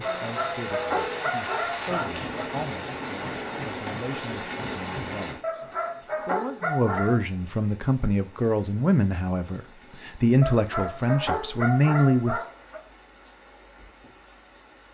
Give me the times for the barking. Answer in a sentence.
The barking can be heard from 0.1 to 2.5 s, from 5.4 to 7.2 s and from 10.4 to 12.8 s.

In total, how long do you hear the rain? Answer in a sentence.
You can hear the rain for 15 seconds altogether.